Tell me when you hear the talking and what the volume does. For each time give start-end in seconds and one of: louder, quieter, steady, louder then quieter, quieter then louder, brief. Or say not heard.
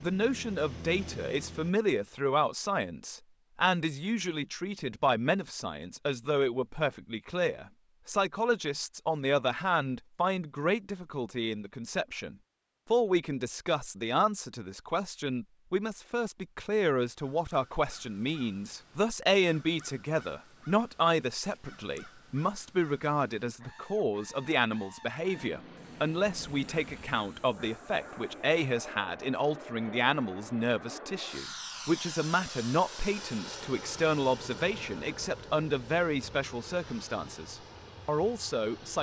0.0-38.9 steady.